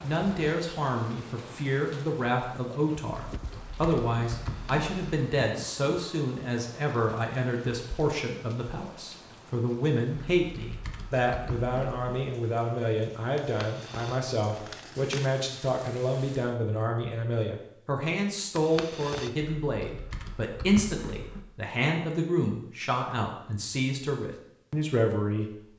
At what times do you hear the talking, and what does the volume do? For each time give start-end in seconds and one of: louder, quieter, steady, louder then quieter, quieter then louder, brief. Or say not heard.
0.0-25.6 steady.